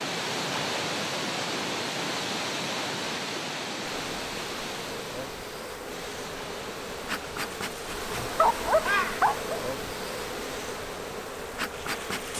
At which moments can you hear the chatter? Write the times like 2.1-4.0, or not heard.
not heard.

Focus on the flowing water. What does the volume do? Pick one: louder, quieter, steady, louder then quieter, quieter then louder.
quieter.